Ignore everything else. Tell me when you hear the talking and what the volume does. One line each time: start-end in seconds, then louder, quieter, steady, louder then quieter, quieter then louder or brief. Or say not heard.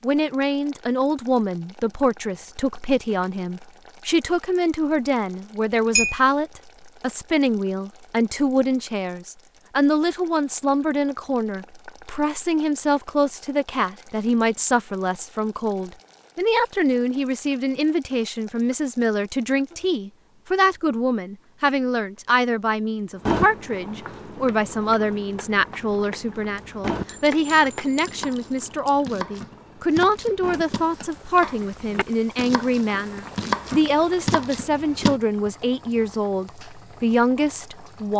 0.0-38.1 steady.